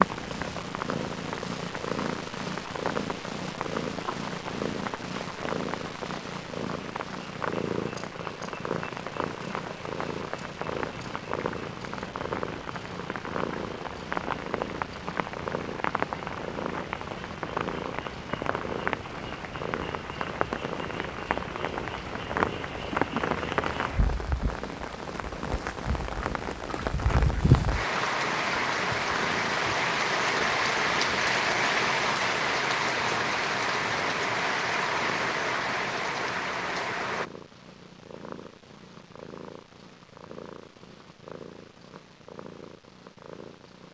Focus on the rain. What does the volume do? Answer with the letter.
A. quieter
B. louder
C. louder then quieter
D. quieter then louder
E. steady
B.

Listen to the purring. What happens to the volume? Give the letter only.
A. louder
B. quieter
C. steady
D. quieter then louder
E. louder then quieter
B.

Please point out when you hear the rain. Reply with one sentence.
The rain can be heard from 0.0 to 37.2 s.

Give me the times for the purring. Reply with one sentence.
The purring can be heard from 0.0 to 43.8 s.